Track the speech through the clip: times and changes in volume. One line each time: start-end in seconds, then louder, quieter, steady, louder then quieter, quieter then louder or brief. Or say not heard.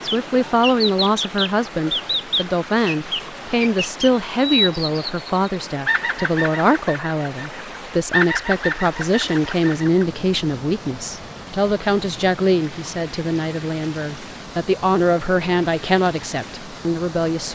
0.0-17.5 steady.